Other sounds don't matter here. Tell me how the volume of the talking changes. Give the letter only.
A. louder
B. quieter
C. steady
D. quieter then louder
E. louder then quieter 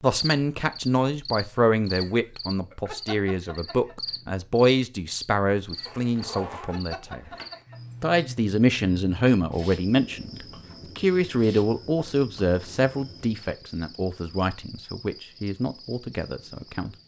B.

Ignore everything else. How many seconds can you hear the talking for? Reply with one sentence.
You can hear the talking for 16 seconds altogether.